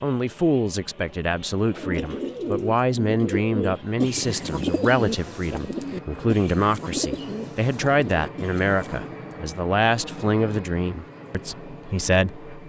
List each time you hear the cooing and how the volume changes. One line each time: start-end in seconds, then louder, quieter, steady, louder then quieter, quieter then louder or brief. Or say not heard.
1.6-9.2 quieter.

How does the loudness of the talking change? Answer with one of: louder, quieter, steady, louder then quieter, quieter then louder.
steady.